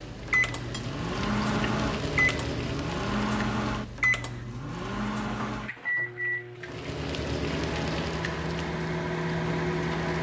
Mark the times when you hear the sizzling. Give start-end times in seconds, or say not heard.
0.0-4.2, 6.5-10.1.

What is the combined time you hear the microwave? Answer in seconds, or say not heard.
10 s.